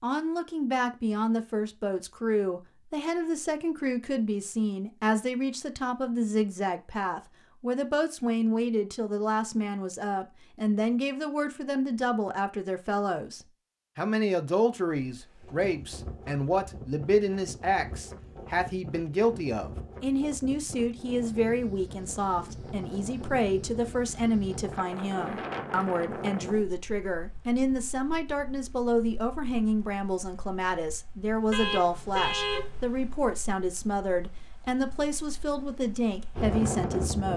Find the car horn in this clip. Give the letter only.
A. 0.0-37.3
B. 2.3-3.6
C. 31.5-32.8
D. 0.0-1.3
C.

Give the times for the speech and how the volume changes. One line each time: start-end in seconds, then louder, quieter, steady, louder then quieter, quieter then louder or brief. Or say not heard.
0.0-37.3 steady.